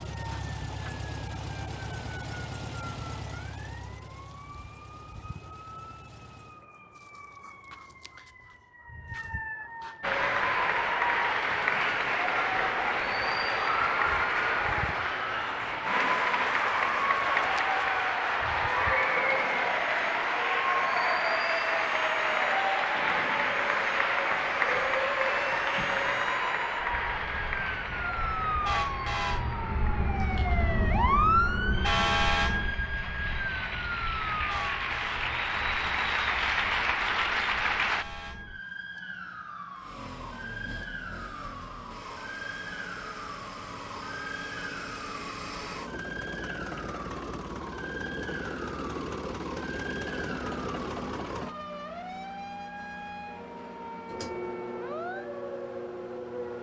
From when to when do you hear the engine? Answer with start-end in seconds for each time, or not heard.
0.0-6.7, 39.8-56.5.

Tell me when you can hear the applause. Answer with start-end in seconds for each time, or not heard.
10.0-38.0.